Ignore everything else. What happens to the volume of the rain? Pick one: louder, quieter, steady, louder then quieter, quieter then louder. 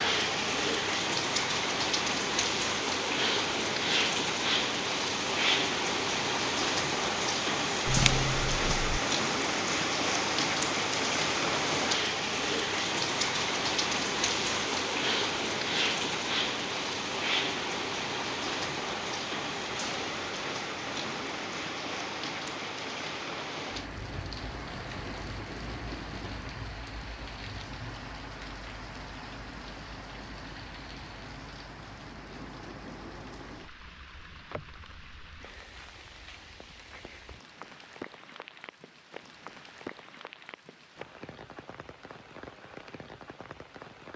quieter.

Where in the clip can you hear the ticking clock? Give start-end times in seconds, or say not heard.
not heard.